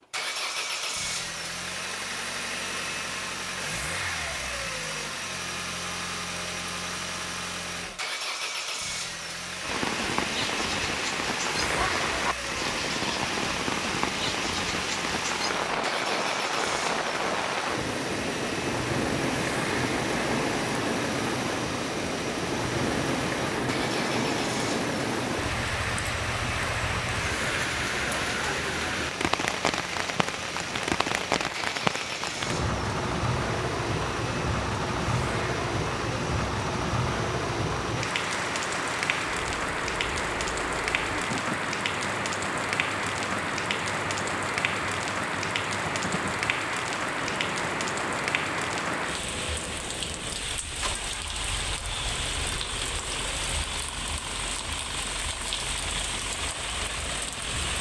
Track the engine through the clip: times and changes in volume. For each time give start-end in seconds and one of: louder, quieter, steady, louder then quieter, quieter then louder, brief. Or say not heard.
0.1-57.7 quieter.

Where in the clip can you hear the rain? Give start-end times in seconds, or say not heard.
9.6-57.7.